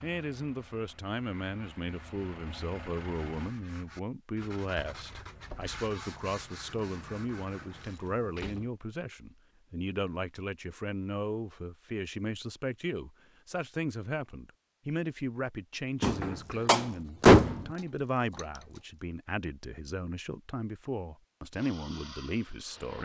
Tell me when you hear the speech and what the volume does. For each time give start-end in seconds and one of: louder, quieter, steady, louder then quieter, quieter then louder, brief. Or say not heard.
0.0-23.0 steady.